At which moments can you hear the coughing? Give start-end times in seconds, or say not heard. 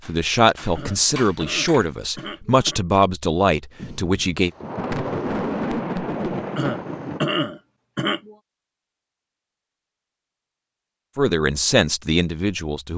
0.8-2.8, 6.5-8.3.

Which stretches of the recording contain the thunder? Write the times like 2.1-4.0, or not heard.
3.8-7.2.